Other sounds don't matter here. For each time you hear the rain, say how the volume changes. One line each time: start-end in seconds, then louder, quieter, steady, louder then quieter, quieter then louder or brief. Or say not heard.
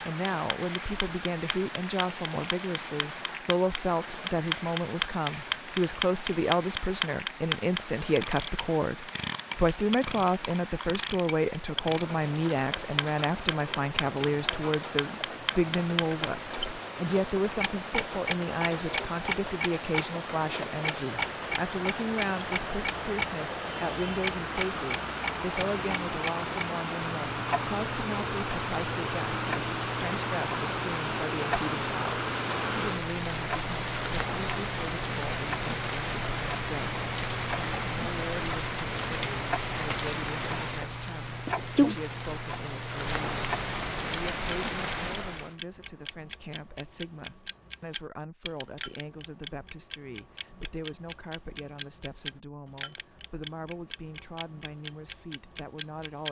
0.0-45.5 louder.